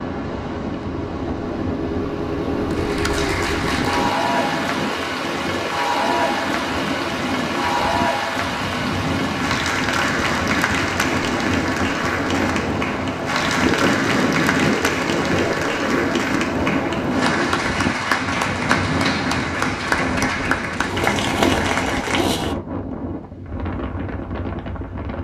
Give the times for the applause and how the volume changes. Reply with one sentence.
The applause can be heard from 2.6 to 22.6 s, at a steady volume.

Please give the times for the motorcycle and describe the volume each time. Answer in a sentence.
You can hear the motorcycle from 0.0 to 4.1 s, getting louder; and briefly from 20.9 to 22.6 s.